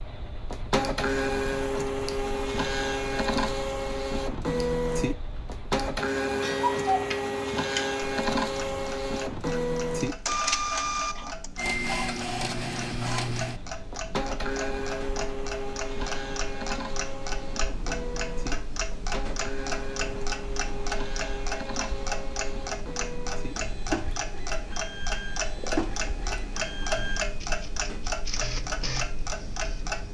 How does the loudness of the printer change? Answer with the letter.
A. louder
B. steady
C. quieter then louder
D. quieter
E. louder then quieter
D.